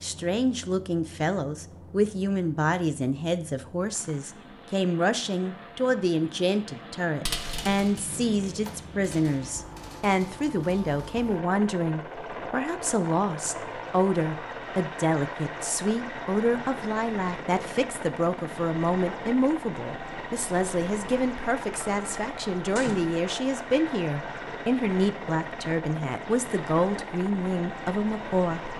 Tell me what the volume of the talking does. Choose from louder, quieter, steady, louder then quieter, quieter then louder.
steady.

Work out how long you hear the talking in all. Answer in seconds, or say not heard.
29 s.